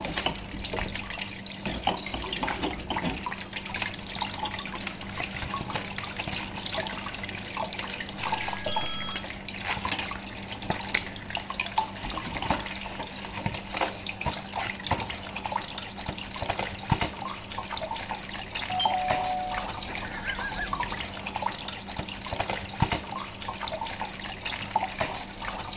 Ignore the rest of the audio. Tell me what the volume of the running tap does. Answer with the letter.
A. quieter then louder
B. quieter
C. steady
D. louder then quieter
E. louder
C.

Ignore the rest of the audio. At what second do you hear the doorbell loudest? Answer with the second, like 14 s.
19 s.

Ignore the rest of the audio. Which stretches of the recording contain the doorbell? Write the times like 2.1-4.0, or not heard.
8.4-9.2, 18.6-20.7.